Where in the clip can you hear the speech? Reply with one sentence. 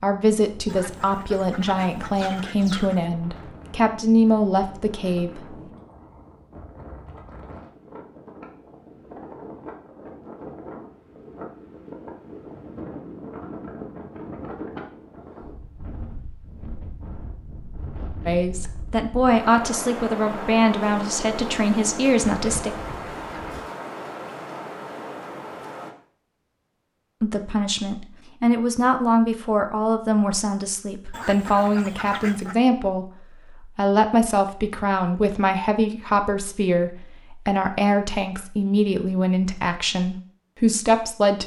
The speech can be heard from 0.0 to 5.5 s, from 18.2 to 22.8 s, from 27.2 to 33.1 s and from 33.8 to 41.4 s.